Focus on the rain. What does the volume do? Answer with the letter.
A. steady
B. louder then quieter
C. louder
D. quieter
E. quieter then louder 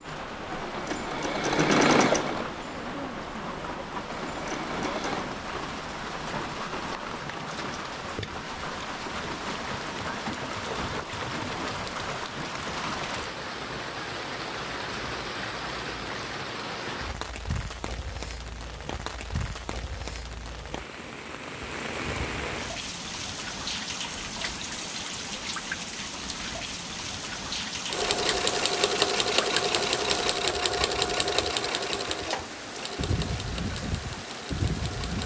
A.